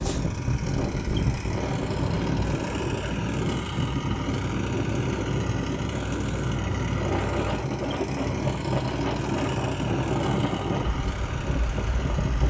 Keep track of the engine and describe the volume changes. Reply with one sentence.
The volume of the engine stays about the same.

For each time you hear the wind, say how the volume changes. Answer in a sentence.
The wind can be heard from 0.0 to 12.4 s, at a steady volume.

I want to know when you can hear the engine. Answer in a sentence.
You can hear the engine from 0.0 to 12.4 s.